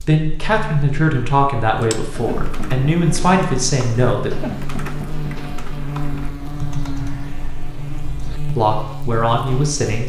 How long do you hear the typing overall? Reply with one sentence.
The typing can be heard for 7 seconds in total.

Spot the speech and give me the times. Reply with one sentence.
You can hear the speech from 0.0 to 4.3 s and from 8.6 to 10.0 s.